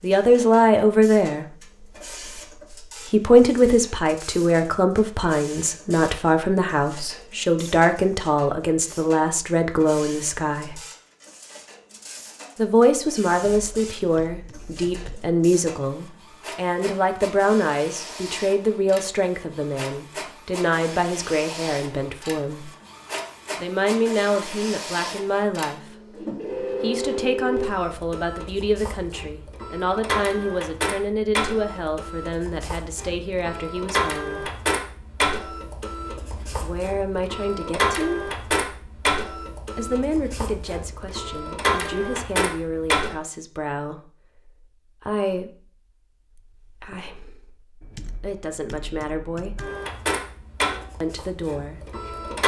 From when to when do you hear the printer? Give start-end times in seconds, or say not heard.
0.0-43.1, 49.5-52.4.